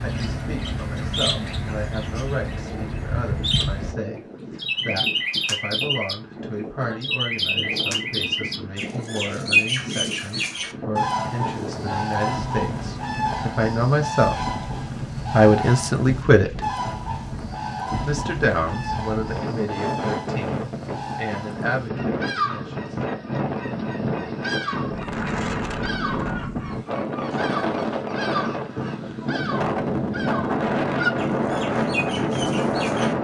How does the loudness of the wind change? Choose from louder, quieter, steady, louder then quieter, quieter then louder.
louder.